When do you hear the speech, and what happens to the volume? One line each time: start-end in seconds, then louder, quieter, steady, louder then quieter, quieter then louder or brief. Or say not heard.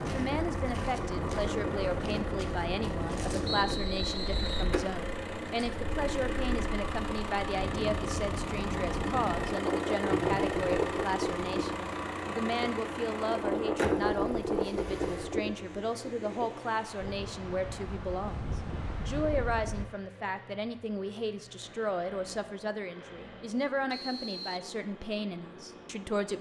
0.1-26.3 steady.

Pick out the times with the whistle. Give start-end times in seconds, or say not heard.
3.5-4.8, 10.1-10.6, 23.9-24.7.